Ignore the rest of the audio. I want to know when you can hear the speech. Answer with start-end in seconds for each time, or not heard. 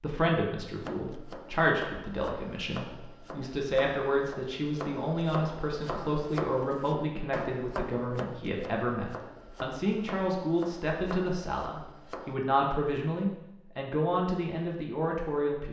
0.0-15.6.